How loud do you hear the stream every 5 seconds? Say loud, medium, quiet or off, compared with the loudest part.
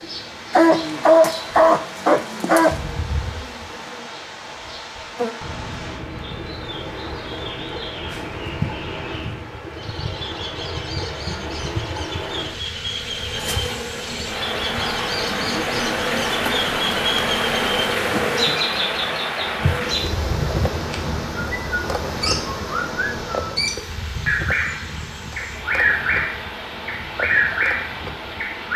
medium, medium, medium, loud, medium, medium.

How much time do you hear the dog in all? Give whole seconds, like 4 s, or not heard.
2 s.